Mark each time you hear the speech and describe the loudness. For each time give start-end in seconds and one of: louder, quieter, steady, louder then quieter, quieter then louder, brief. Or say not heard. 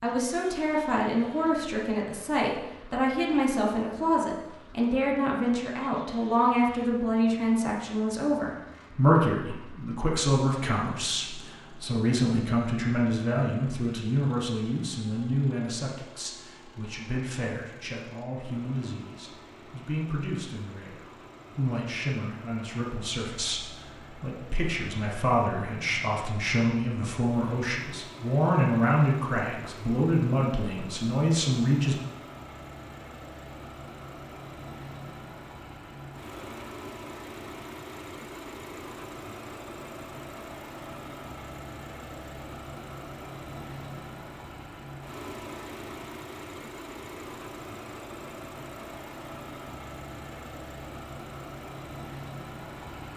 0.0-31.9 quieter then louder.